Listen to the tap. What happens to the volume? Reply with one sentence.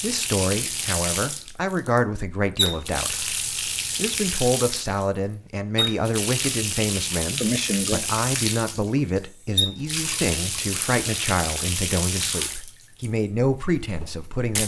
The loudness of the tap stays about the same.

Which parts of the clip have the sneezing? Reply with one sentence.
You can hear the sneezing from 7.4 to 8.1 s.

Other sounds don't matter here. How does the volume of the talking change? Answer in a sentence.
The loudness of the talking stays about the same.